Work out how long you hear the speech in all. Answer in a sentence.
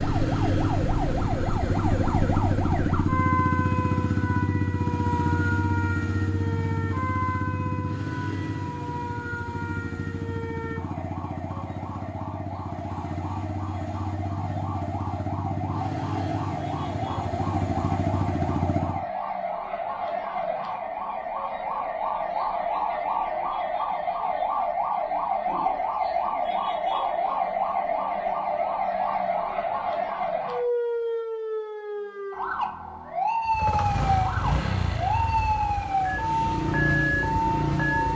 You can't hear the speech here.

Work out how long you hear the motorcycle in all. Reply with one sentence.
The motorcycle can be heard for 24 seconds in total.